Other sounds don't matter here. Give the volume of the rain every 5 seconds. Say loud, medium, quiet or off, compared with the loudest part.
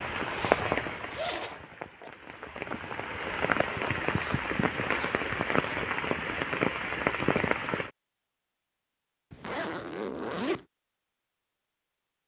loud, loud, off.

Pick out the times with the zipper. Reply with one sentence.
You can hear the zipper from 0.1 to 2.1 s, from 4.2 to 5.8 s and from 9.3 to 10.7 s.